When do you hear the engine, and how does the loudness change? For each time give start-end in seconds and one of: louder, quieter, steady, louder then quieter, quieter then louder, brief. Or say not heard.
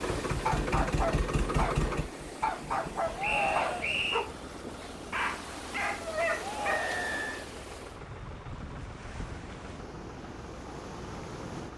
0.0-11.7 quieter.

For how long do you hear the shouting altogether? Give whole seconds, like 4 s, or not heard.
2 s.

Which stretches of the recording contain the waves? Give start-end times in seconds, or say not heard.
0.0-11.7.